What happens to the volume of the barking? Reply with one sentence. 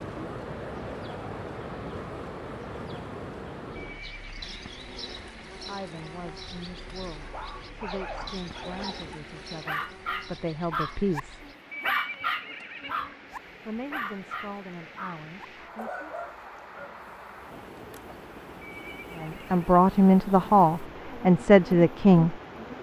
The loudness of the barking goes up, then down.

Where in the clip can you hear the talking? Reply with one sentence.
The talking can be heard from 5.5 to 11.4 s, from 13.7 to 16.1 s and from 19.2 to 22.4 s.